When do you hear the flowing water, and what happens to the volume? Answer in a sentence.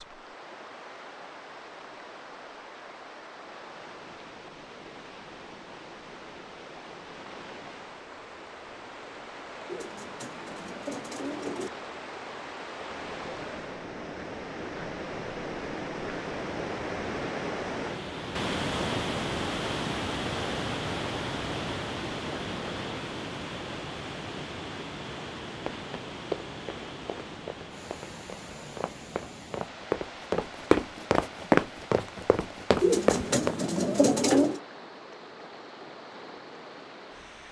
The flowing water can be heard from 0.0 to 37.4 s, getting louder then quieter.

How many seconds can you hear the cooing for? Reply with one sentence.
The cooing can be heard for 4 seconds in total.